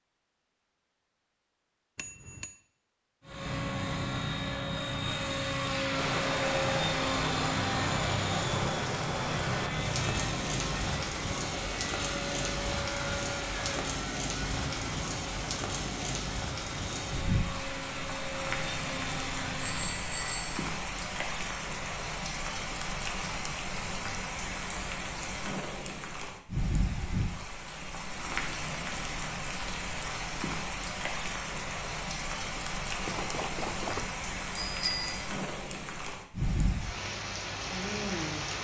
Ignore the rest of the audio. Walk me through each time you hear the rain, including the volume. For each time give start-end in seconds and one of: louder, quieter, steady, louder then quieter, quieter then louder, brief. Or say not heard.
5.9-38.5 steady.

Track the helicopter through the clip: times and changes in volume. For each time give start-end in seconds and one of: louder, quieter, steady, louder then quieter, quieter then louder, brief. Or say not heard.
3.2-20.1 quieter.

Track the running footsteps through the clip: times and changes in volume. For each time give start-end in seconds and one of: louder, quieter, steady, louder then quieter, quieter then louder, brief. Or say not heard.
not heard.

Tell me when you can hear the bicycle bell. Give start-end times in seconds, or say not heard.
1.9-2.5, 19.6-20.5, 33.0-35.2.